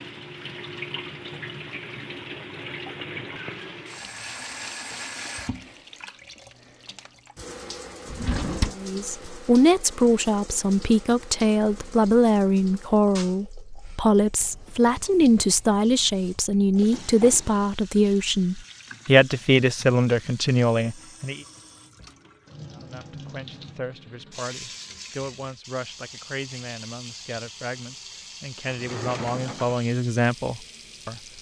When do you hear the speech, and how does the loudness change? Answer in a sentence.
The speech can be heard from 8.7 to 21.4 s, at a steady volume; and from 22.8 to 31.3 s, getting louder.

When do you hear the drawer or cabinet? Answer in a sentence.
The drawer or cabinet can be heard from 8.1 to 8.8 s, from 16.9 to 17.6 s and from 28.6 to 29.8 s.